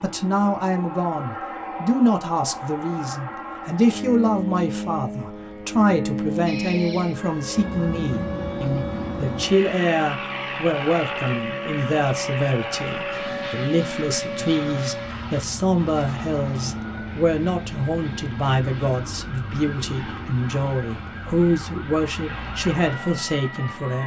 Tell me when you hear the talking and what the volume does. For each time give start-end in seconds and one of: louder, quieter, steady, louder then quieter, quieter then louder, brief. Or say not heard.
0.0-24.0 steady.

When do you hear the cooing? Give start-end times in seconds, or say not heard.
not heard.